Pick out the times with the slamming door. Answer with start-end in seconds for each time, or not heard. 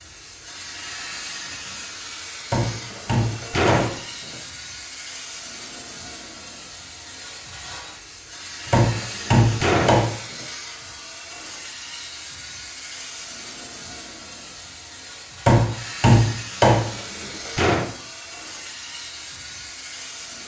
2.7-4.4, 8.7-10.5, 16.8-17.9.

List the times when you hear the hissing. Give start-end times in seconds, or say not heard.
0.0-20.4.